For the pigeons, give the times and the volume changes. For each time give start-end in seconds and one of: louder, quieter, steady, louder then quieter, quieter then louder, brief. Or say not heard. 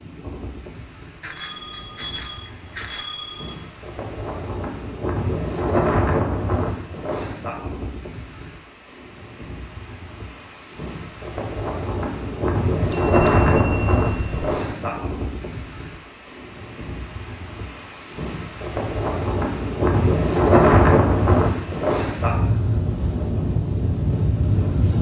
not heard.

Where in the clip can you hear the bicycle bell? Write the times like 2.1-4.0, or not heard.
1.2-3.5, 12.8-14.7.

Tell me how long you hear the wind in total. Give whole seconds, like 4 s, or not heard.
25 s.